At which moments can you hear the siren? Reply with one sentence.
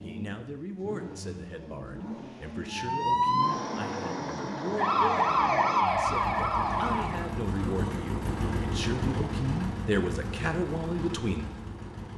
You can hear the siren from 2.7 to 7.4 s.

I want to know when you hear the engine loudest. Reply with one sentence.
The loudest moment of the engine is at 9 seconds.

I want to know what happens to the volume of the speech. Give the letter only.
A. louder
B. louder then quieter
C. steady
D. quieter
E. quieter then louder
A.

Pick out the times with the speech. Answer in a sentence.
The speech can be heard from 0.0 to 11.6 s.